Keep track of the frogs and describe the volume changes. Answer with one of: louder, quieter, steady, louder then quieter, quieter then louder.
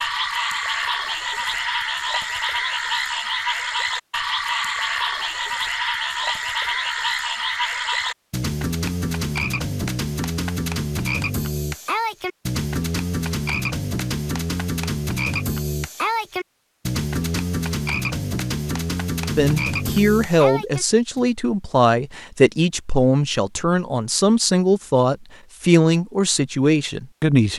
steady.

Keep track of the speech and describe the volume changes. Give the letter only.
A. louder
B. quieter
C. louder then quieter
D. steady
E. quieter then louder
D.